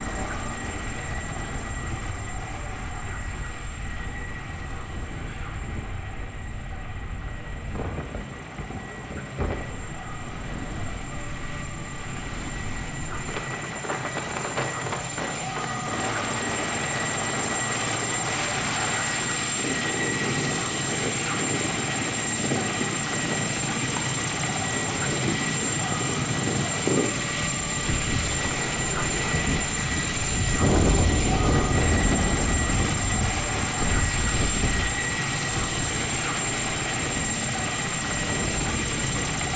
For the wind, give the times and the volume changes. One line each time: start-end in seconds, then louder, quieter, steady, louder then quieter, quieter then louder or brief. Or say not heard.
0.1-39.5 louder.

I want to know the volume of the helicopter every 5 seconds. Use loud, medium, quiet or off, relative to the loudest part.
medium, quiet, medium, loud, loud, loud, loud, loud.